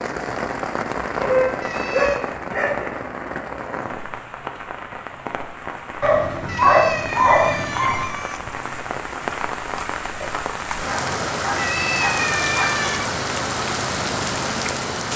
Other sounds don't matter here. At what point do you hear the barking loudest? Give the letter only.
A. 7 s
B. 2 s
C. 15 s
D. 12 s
A.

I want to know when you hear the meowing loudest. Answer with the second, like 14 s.
12 s.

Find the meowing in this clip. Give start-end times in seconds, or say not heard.
1.6-2.3, 6.5-8.4, 11.6-13.2.